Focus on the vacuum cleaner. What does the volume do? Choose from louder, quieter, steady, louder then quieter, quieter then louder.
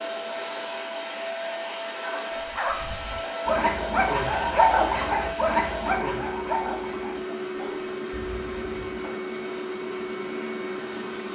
steady.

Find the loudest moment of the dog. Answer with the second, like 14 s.
5 s.